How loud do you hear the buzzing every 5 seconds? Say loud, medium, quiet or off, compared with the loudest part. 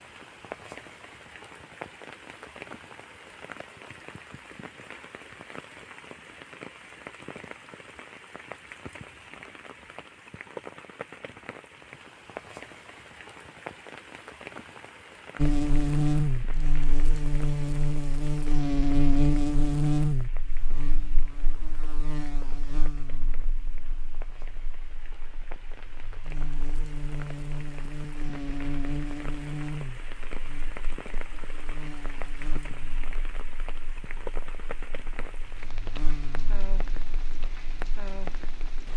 off, off, off, loud, medium, medium, quiet, quiet.